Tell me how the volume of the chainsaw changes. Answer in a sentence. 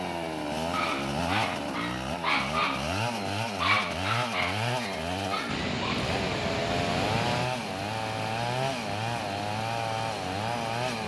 The volume of the chainsaw stays about the same.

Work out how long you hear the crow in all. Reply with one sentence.
You can't hear the crow here.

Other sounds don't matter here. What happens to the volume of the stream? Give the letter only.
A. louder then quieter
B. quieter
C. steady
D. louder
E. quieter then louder
B.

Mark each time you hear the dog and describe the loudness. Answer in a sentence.
You can hear the dog from 0.7 to 6.0 s, getting louder then quieter.